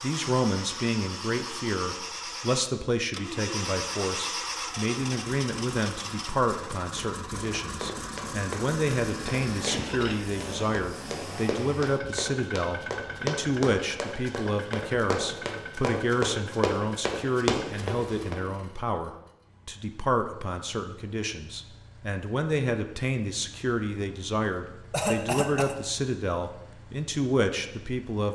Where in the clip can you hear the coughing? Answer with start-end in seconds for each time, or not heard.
9.7-10.8, 24.9-25.8.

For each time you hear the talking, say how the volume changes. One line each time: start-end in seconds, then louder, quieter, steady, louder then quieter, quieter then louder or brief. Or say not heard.
0.0-28.3 steady.